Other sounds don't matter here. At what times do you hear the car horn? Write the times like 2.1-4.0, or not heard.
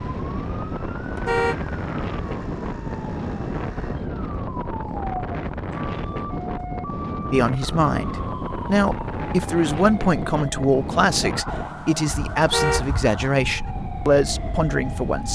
1.1-2.5, 12.4-13.7.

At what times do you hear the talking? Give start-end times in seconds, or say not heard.
7.3-15.3.